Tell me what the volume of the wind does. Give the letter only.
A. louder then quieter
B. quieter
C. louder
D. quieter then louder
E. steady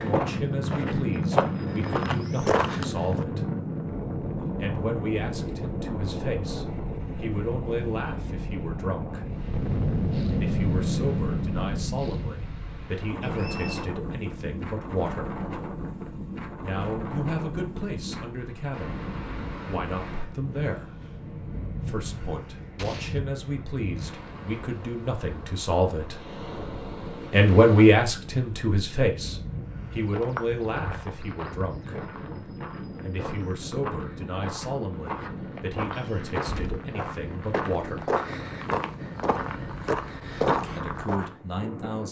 B.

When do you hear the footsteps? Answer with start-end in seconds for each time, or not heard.
0.0-3.2, 30.1-41.3.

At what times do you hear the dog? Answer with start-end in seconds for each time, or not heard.
not heard.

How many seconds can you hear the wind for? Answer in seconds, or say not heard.
42 s.